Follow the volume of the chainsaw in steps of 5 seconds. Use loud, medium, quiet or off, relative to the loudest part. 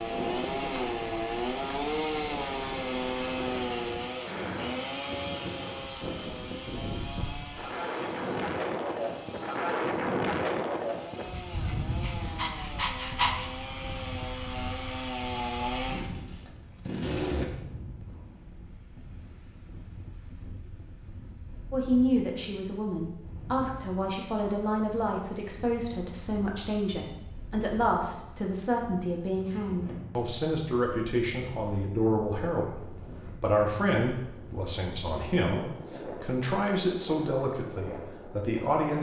loud, medium, medium, loud, off, off, off, off.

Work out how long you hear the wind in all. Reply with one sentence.
The wind can be heard for 39 seconds in total.